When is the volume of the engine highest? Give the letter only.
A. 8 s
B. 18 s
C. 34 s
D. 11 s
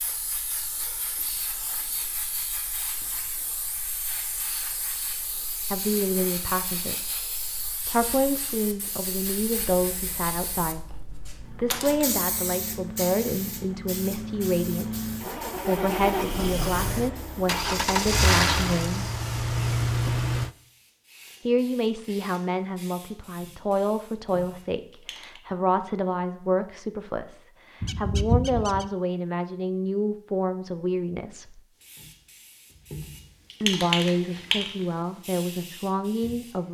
B.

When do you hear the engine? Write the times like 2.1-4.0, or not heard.
9.6-20.5.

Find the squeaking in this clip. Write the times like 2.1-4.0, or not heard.
27.8-28.9.